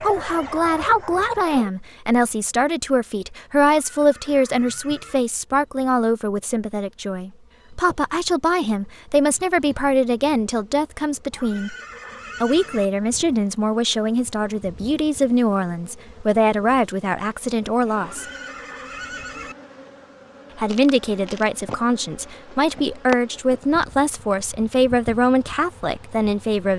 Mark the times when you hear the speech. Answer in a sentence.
The speech can be heard from 0.0 to 11.8 s, from 12.4 to 18.2 s and from 20.6 to 26.7 s.